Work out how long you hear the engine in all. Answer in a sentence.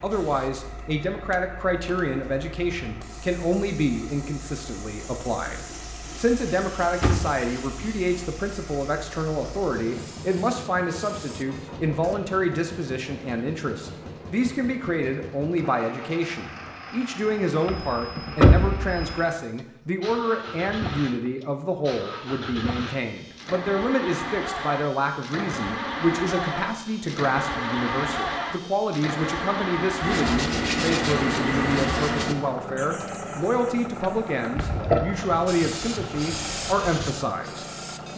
The engine can be heard for 38 seconds in total.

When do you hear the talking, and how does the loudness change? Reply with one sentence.
The talking can be heard from 0.0 to 38.1 s, at a steady volume.